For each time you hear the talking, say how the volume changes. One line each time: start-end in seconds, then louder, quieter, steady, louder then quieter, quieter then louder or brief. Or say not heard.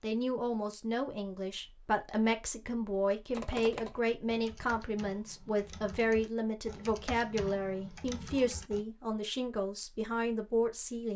0.0-11.1 steady.